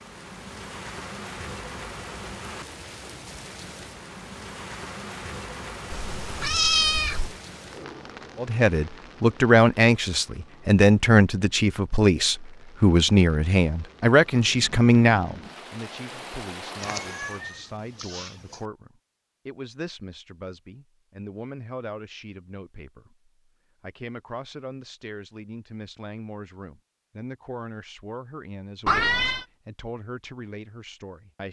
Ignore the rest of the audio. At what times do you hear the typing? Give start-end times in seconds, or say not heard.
not heard.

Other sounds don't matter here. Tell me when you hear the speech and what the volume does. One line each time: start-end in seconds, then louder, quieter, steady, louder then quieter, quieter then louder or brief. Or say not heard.
8.3-31.4 quieter.